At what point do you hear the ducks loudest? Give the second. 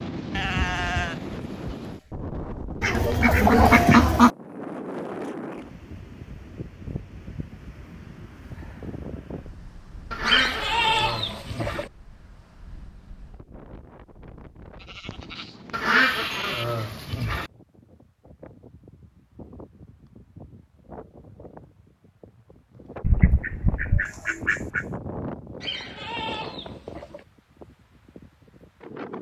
4 s.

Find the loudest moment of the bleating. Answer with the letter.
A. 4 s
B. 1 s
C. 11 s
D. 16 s
C.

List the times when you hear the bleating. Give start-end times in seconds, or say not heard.
0.3-1.8, 10.2-11.9, 14.8-16.6, 25.6-27.2.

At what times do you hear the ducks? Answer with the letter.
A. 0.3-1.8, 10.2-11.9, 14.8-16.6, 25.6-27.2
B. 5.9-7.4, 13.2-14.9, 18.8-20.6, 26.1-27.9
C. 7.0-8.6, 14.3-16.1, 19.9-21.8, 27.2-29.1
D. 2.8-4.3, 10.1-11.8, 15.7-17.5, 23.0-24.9
D.